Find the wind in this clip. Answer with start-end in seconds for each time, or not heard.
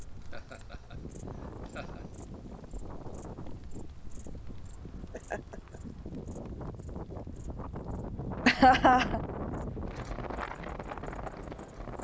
0.0-11.9.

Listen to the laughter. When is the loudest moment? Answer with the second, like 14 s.
9 s.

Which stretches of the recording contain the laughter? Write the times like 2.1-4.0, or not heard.
0.3-2.0, 5.1-5.8, 8.4-9.2.